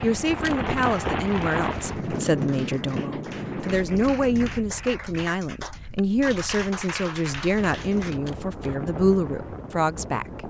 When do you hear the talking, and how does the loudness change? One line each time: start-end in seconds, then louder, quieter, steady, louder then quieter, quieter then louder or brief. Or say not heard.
0.0-10.4 steady.